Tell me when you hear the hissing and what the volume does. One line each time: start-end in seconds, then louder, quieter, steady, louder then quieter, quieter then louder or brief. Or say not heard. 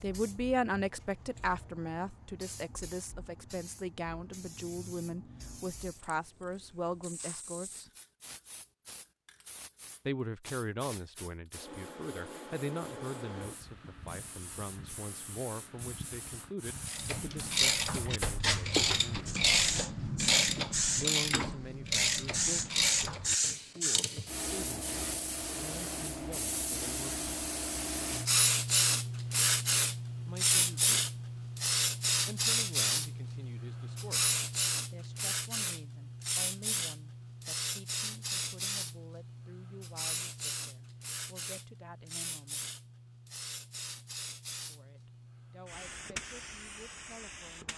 0.0-47.7 louder then quieter.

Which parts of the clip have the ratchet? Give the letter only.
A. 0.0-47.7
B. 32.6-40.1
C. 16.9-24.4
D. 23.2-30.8
C.